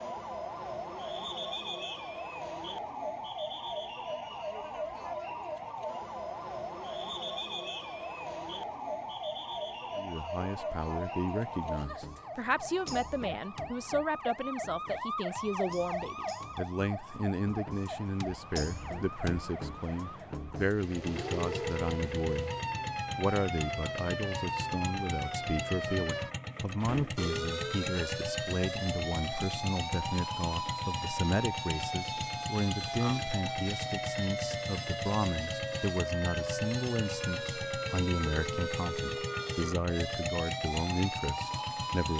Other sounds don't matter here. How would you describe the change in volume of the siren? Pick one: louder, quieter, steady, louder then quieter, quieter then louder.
steady.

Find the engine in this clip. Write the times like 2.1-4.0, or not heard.
20.6-42.1.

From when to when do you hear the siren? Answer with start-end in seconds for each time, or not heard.
0.0-42.1.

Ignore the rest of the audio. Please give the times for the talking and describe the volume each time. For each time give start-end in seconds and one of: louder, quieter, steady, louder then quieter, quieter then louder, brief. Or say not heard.
9.9-22.6 steady
23.1-42.1 steady.